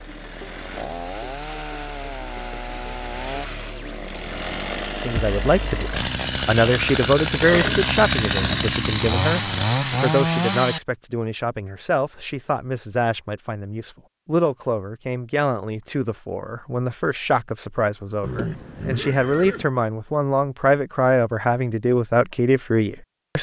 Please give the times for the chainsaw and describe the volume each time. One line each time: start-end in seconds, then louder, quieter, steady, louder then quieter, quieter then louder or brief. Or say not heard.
0.0-10.8 louder.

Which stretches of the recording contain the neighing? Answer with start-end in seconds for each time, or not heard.
7.4-8.7, 18.2-19.6.